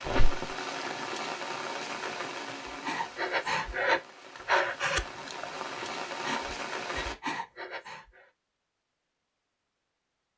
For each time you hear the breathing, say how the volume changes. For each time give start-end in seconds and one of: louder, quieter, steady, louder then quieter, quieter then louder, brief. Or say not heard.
2.6-8.2 quieter.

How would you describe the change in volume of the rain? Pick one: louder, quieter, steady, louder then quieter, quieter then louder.
quieter then louder.